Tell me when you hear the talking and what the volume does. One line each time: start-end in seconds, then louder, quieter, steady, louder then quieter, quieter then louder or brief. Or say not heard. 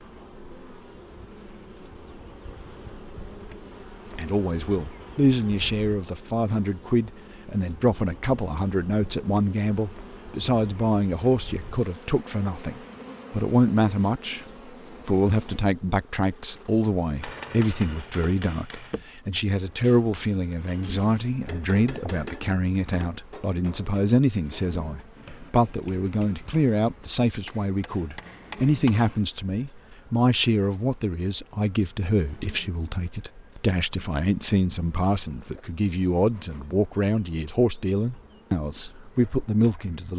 4.2-40.1 steady.